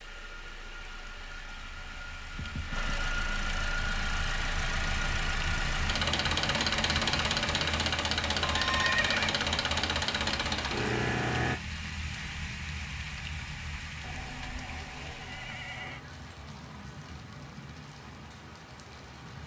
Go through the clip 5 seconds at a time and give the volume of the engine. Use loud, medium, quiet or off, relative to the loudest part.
medium, loud, loud, off.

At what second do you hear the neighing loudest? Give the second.
9 s.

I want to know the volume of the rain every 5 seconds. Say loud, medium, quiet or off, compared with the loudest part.
medium, loud, loud, medium.